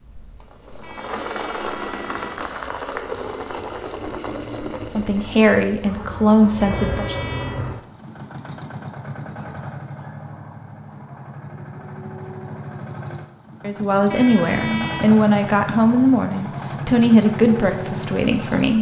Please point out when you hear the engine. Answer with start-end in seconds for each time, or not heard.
0.0-18.7.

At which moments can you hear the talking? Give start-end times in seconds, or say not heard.
4.8-7.2, 13.6-18.7.